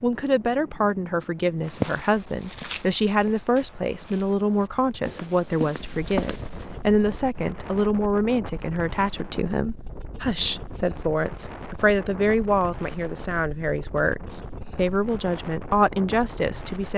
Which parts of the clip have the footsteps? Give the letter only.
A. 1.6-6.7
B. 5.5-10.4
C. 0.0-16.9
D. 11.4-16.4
A.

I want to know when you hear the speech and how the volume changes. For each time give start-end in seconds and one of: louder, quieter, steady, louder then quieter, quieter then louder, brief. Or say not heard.
0.0-16.9 steady.